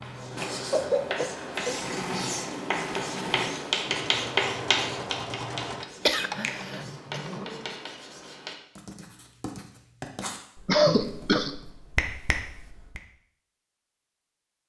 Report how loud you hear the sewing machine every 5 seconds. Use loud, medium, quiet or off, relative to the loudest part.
loud, loud, off.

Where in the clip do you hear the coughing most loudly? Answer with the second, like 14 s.
11 s.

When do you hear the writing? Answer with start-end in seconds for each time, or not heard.
0.0-11.7.